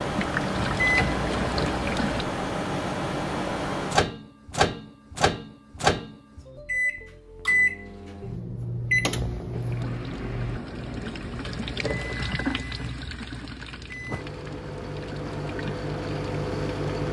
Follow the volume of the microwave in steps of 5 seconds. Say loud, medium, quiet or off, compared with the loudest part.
loud, loud, medium, loud.